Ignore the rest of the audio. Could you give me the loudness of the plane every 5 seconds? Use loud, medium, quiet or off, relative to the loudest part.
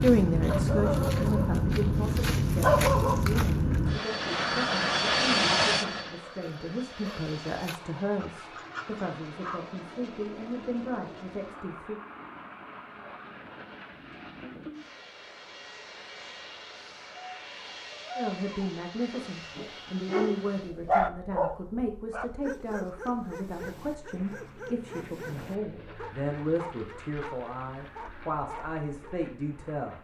loud, loud, quiet, quiet, quiet, quiet.